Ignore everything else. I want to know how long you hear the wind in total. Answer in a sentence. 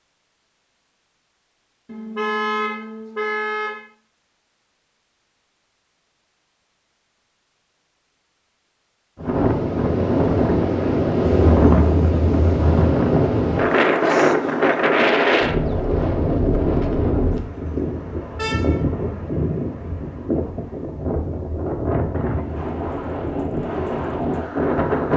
The wind can be heard for 16 seconds in total.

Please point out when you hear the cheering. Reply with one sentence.
You can't hear the cheering here.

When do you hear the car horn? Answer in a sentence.
The car horn can be heard from 1.9 to 3.8 s, from 11.2 to 12.7 s and from 18.4 to 18.8 s.